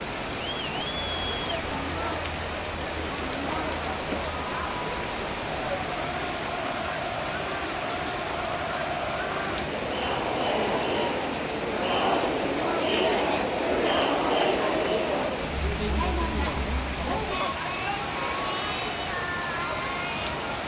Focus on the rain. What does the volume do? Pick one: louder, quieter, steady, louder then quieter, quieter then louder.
steady.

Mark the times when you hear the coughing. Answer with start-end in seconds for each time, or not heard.
not heard.